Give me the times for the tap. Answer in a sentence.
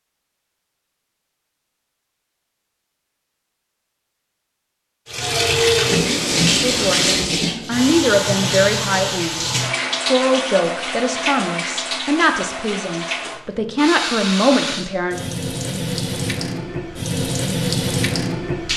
You can hear the tap from 5.0 to 18.7 s.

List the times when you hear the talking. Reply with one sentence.
The talking can be heard from 6.6 to 15.2 s.